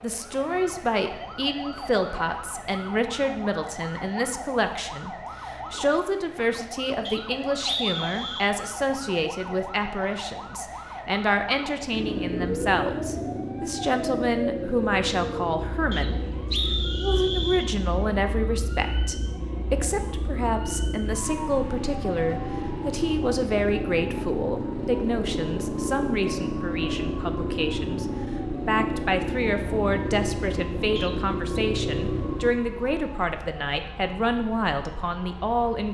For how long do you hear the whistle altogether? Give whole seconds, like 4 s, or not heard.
4 s.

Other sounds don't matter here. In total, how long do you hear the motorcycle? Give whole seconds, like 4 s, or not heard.
21 s.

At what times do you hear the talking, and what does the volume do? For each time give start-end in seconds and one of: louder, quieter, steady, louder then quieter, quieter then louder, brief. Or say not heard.
0.0-16.2 steady
17.0-35.9 steady.